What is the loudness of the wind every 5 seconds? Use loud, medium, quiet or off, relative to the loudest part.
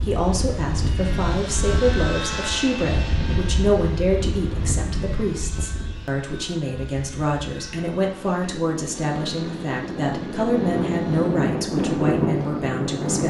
medium, medium, loud.